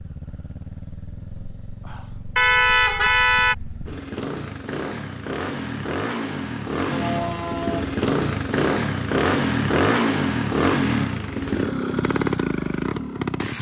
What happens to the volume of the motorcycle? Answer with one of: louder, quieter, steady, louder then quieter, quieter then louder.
louder.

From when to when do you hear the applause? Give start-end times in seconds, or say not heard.
not heard.